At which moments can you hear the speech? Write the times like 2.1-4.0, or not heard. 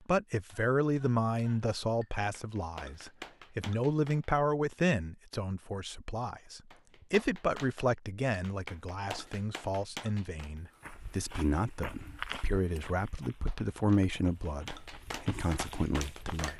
0.1-16.5.